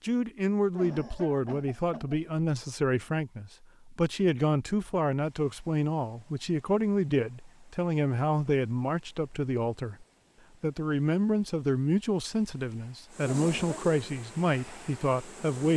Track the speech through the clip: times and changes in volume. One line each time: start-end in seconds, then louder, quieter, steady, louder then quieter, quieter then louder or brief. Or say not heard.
0.0-15.7 steady.